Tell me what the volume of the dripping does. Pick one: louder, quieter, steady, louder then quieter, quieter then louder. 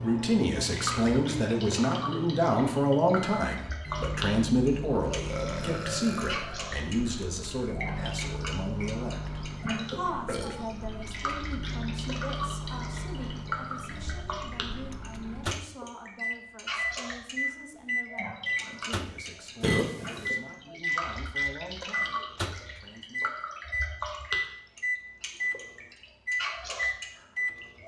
steady.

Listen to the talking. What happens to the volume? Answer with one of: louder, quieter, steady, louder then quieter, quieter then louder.
quieter.